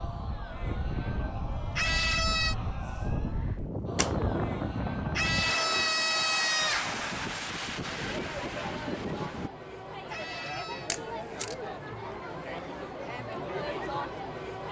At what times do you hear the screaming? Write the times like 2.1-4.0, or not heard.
1.8-2.5, 5.2-7.0, 10.1-10.9.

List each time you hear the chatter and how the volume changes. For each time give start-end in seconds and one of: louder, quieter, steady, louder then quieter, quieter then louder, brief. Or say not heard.
0.0-14.6 louder.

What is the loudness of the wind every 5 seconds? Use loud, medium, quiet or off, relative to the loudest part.
loud, loud, off.